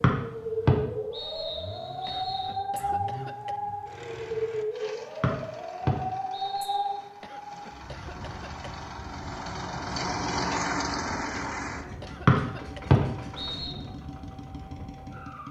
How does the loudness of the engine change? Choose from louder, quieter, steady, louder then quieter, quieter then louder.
louder then quieter.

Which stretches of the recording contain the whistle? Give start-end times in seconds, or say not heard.
0.0-2.6, 5.2-7.0, 12.2-13.8.